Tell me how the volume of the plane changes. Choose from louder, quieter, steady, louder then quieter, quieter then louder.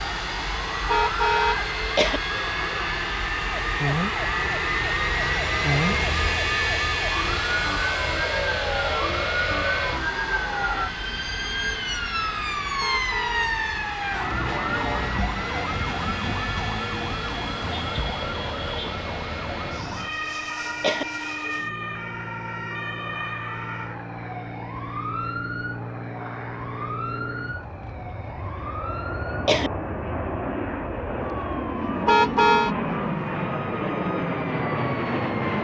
quieter then louder.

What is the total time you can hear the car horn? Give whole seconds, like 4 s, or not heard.
3 s.